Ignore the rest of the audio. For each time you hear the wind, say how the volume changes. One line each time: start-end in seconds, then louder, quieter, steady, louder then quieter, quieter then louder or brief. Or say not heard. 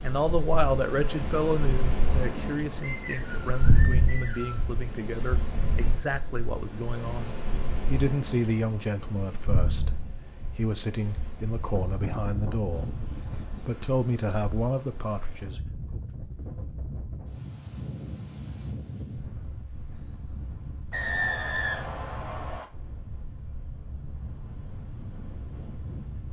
0.0-26.2 quieter.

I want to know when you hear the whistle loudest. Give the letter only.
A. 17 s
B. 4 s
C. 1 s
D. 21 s
D.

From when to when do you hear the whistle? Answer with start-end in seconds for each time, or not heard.
2.8-4.7, 20.9-22.6.